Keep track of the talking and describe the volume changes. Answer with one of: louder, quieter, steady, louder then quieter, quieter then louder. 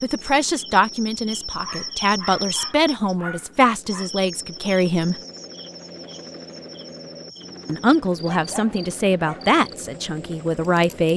steady.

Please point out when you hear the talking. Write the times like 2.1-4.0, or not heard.
0.0-5.2, 7.7-11.1.